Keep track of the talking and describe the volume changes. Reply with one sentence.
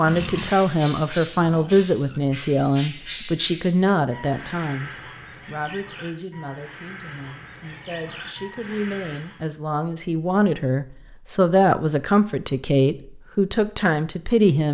The loudness of the talking goes down, then up.